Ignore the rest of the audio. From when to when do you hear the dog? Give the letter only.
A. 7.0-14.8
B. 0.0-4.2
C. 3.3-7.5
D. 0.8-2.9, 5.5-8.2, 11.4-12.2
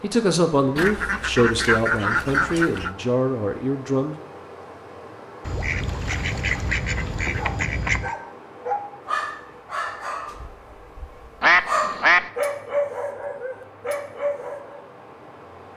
A.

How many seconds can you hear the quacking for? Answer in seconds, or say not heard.
6 s.